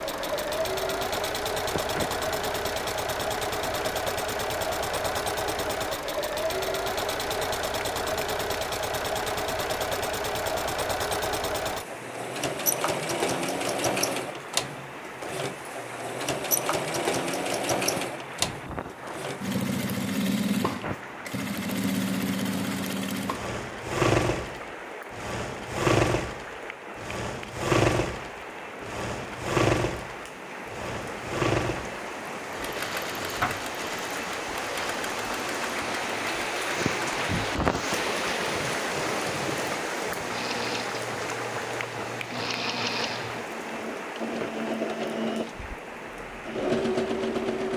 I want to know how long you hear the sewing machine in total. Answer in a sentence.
You can hear the sewing machine for 48 seconds altogether.